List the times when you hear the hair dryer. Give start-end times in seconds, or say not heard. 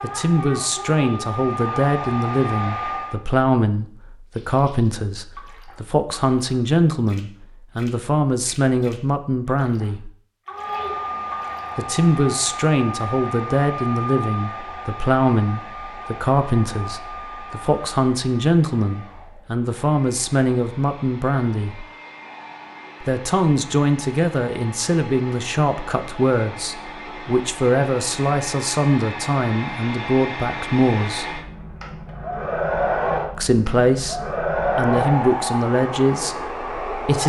0.0-3.2, 10.4-37.2.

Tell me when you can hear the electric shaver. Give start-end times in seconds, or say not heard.
not heard.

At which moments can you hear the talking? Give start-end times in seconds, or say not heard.
0.0-10.1, 11.8-21.9, 23.0-31.4, 33.4-37.2.